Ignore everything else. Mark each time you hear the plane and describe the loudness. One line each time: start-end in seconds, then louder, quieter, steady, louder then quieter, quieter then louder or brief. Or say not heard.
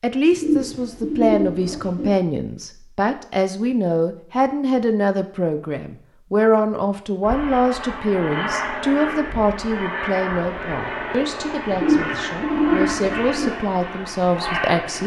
7.2-15.0 steady.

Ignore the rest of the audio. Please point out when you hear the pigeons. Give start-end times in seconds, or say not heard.
0.3-2.1, 11.7-13.5.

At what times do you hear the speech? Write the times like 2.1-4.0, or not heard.
0.0-15.0.